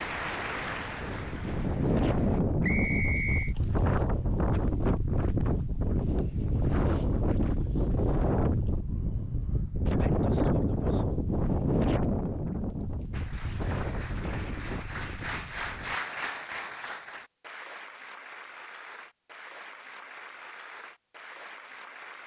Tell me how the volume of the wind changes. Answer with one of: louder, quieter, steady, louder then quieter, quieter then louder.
quieter.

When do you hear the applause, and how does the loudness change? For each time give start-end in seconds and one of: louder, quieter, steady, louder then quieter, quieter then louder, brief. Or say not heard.
0.0-2.4 brief
13.1-22.2 louder then quieter.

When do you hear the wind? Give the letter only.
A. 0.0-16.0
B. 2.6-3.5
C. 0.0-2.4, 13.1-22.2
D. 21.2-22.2
A.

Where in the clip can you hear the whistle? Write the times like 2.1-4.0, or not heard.
2.6-3.5.